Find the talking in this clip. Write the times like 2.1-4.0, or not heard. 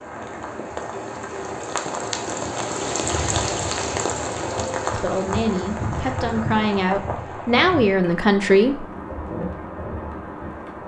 4.9-8.8.